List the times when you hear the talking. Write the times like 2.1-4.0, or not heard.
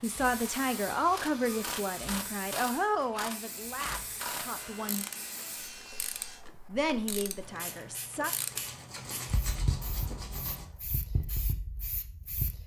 0.0-5.0, 6.7-8.3.